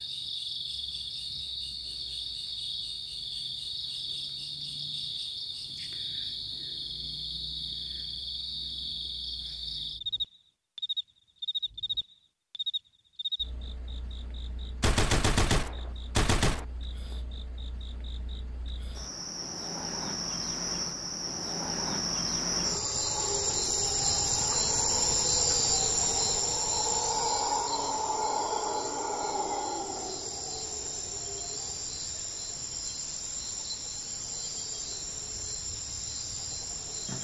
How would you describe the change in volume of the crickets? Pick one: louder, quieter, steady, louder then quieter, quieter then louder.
louder then quieter.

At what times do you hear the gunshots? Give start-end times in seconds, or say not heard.
14.8-16.6.